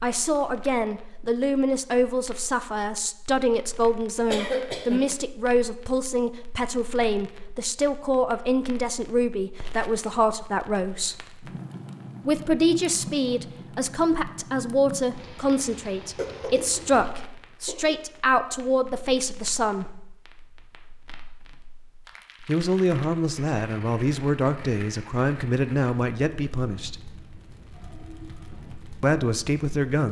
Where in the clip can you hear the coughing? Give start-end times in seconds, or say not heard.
4.3-5.0, 16.1-17.9.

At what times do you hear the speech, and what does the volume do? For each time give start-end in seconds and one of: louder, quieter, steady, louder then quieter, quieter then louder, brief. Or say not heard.
0.0-11.2 steady
12.2-19.9 steady
22.4-27.0 steady
29.0-30.0 brief.